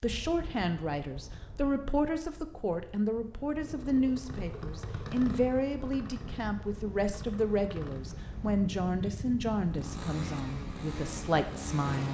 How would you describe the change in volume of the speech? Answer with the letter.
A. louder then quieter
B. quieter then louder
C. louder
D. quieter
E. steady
E.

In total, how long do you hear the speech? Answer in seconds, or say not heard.
12 s.